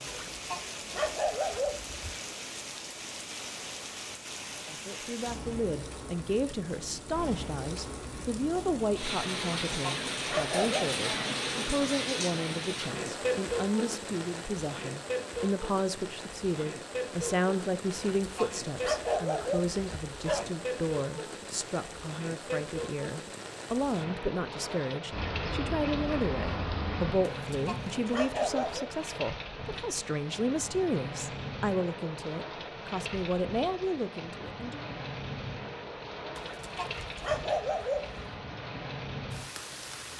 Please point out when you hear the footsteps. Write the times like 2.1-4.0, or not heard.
not heard.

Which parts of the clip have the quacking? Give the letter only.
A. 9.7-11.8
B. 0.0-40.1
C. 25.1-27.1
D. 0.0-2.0
C.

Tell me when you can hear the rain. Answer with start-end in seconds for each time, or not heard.
0.0-40.1.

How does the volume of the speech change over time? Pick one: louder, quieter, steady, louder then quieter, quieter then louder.
steady.